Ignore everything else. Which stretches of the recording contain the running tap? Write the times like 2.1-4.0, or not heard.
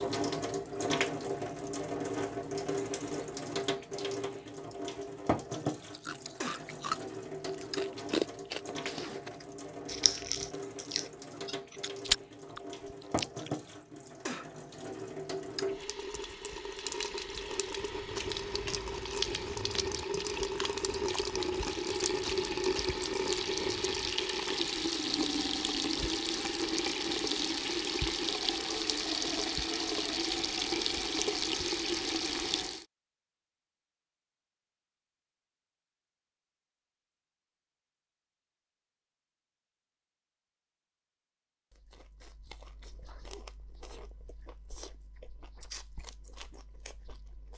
0.0-32.9.